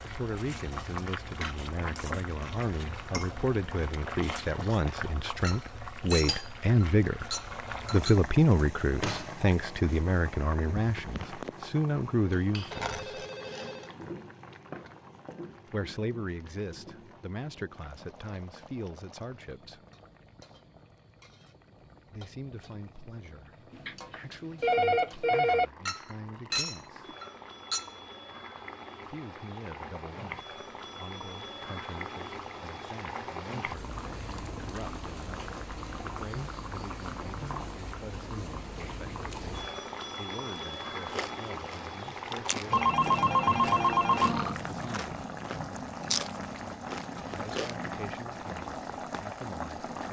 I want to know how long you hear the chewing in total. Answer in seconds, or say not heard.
7 s.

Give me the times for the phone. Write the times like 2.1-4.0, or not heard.
12.7-13.9, 23.7-25.6, 42.7-44.5.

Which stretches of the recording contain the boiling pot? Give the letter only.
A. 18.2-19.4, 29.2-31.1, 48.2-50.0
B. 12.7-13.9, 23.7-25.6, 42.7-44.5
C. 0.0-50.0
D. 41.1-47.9
C.